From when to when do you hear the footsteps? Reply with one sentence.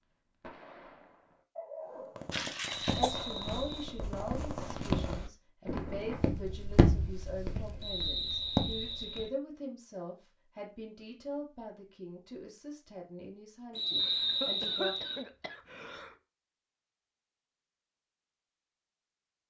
You can hear the footsteps from 2.9 to 9.3 s.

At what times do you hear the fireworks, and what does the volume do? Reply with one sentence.
You can hear the fireworks from 0.0 to 6.2 s, getting louder.